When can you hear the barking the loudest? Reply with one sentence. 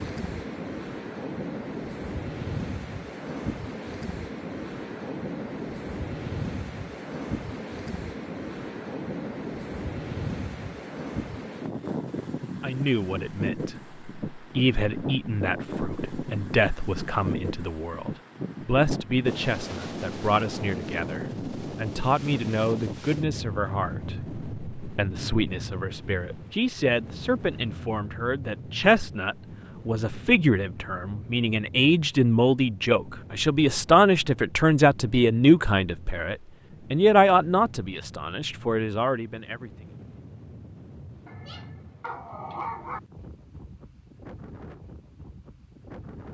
The volume of the barking peaks at 43 seconds.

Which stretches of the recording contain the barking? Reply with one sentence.
The barking can be heard from 41.2 to 43.0 s.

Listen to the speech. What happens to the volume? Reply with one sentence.
The volume of the speech goes up.